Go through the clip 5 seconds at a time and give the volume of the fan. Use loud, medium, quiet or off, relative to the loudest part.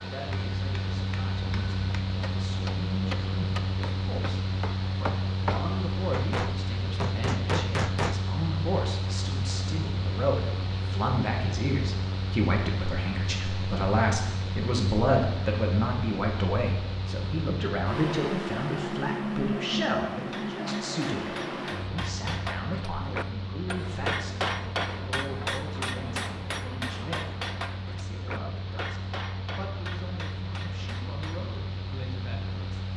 loud, loud, loud, loud, loud, medium, medium.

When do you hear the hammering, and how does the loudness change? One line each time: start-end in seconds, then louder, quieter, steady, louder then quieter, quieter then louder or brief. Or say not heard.
0.1-8.2 louder
20.2-31.5 louder then quieter.